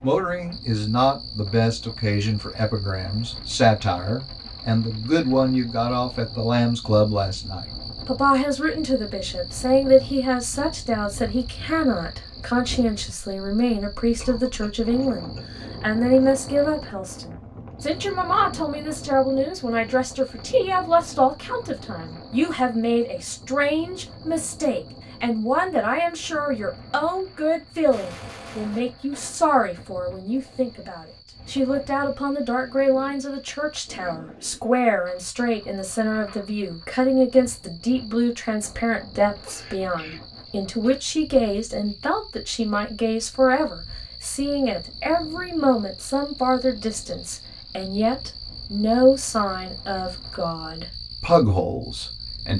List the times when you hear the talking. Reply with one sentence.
The talking can be heard from 0.0 to 52.5 s.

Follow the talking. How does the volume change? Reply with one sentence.
The volume of the talking stays about the same.